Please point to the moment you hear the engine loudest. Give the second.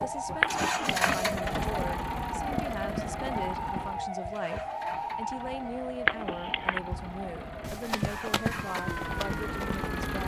1 s.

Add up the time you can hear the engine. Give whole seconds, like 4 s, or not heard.
10 s.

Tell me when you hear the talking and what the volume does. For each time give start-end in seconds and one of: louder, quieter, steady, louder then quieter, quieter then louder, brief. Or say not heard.
0.0-10.2 steady.